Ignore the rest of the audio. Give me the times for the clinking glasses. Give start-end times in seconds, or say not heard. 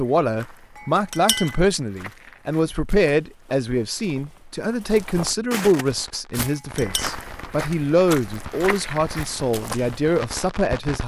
0.8-1.6, 6.4-7.1.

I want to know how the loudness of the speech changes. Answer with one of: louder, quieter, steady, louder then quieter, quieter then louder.
steady.